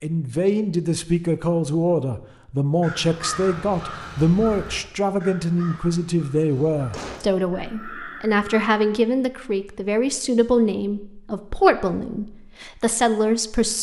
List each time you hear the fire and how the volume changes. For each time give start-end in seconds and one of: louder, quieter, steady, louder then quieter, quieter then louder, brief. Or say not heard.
not heard.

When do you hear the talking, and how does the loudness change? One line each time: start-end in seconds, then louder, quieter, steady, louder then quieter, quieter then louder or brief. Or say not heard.
0.0-13.7 steady.